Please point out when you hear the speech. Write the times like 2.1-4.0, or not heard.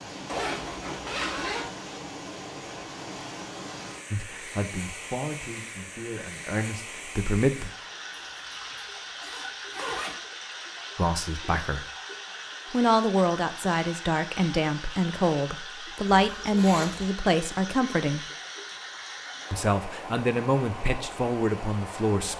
4.1-7.7, 10.9-11.8, 12.7-18.2, 19.5-22.3.